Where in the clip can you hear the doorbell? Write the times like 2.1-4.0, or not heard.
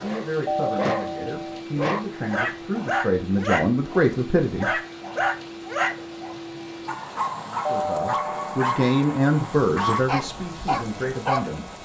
0.5-1.6, 7.7-8.7.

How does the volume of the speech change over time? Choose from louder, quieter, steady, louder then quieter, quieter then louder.
louder then quieter.